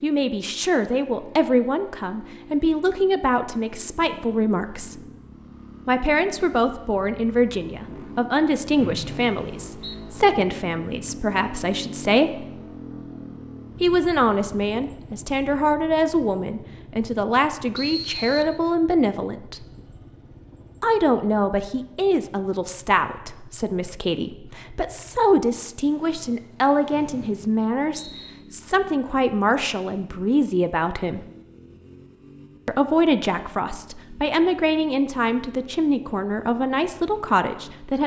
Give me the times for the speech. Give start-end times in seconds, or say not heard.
0.0-5.0, 5.8-12.4, 13.8-19.6, 20.8-31.2, 32.6-38.0.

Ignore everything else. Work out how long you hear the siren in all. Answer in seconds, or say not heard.
not heard.